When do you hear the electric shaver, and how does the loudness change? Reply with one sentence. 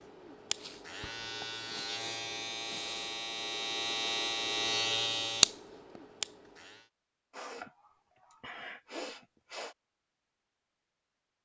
The electric shaver can be heard from 0.0 to 6.8 s, getting louder.